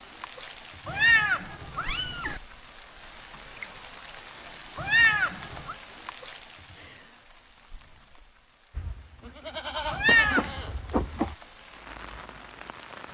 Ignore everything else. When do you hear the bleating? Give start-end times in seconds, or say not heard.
8.8-11.3.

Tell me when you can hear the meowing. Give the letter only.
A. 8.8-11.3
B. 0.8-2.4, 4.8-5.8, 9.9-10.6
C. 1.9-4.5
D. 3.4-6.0
B.